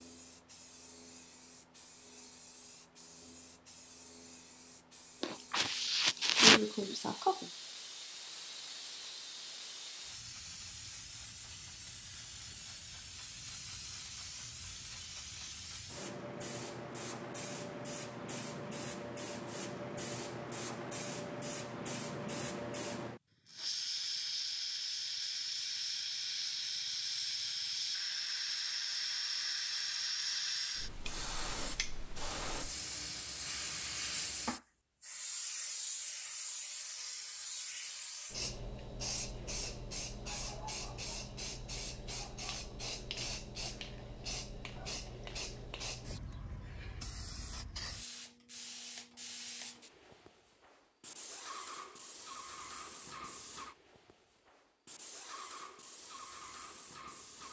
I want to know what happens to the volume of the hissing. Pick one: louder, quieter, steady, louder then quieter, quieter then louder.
louder then quieter.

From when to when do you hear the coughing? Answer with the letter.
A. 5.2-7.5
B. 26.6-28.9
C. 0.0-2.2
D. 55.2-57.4
A.